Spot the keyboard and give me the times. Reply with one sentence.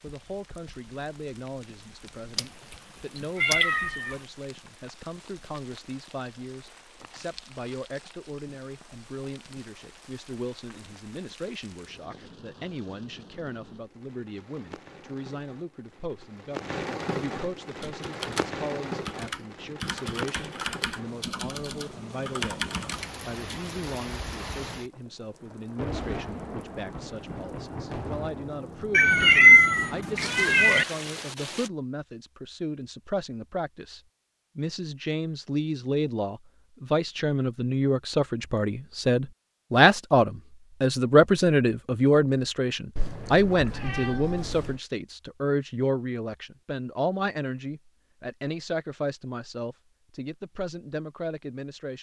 The keyboard can be heard from 17.8 to 23.6 s.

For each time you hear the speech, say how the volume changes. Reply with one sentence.
You can hear the speech from 0.0 to 22.6 s, at a steady volume; and from 23.2 to 51.9 s, getting louder then quieter.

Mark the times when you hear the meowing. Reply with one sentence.
The meowing can be heard from 3.4 to 4.1 s, from 28.9 to 30.9 s and from 43.0 to 44.8 s.